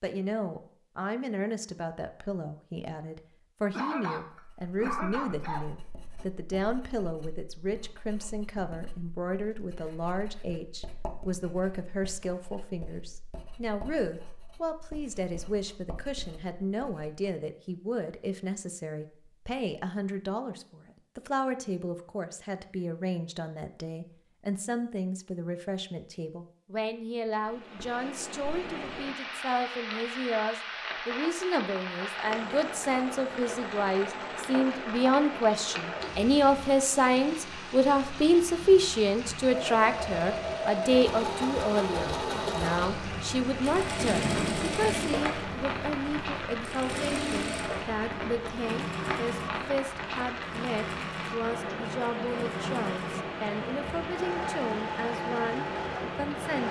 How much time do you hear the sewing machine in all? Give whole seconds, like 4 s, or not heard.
17 s.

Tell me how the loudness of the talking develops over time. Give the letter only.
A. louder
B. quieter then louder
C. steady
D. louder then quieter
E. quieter
D.